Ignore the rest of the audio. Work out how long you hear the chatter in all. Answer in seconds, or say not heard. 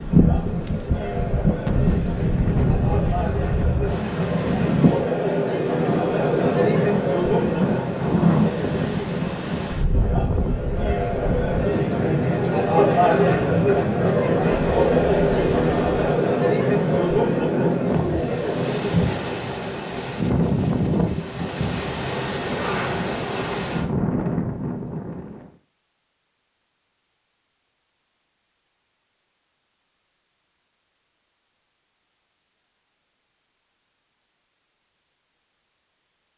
19 s.